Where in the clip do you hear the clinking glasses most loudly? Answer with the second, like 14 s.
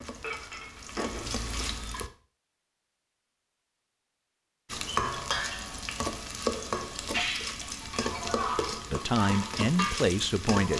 1 s.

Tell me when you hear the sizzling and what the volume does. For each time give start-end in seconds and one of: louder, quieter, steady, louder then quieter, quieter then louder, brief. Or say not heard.
0.0-2.1 brief
4.7-10.7 steady.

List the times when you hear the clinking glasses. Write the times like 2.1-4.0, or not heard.
0.2-1.4, 7.2-8.4.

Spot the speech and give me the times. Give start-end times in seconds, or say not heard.
8.9-10.7.